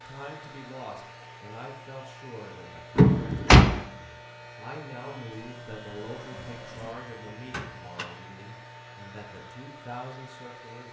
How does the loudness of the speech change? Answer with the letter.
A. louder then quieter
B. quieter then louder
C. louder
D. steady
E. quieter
D.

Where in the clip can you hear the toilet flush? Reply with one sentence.
The toilet flush can be heard from 5.3 to 7.0 s.